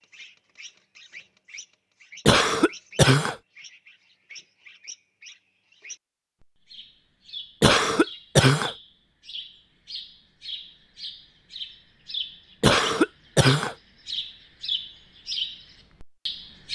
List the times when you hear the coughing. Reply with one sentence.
The coughing can be heard from 2.2 to 3.4 s, from 7.6 to 8.8 s and from 12.6 to 13.8 s.